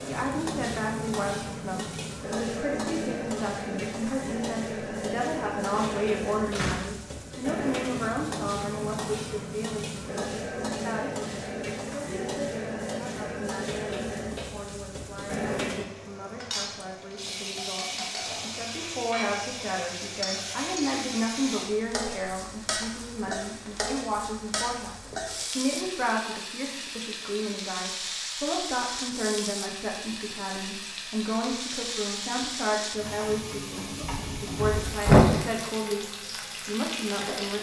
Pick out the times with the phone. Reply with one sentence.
The phone can't be heard in this clip.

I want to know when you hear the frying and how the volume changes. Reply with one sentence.
The frying can be heard from 0.0 to 37.5 s, at a steady volume.